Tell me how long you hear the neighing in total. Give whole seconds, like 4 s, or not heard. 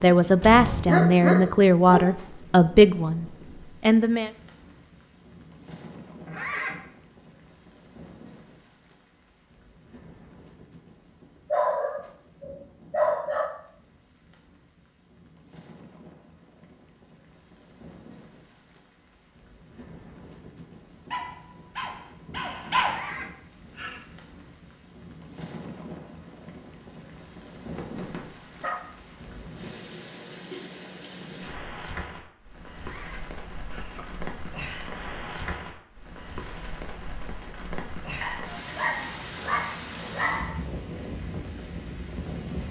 3 s.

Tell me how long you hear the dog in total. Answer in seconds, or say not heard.
9 s.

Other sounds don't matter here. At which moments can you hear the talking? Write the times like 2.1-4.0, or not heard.
0.0-4.3.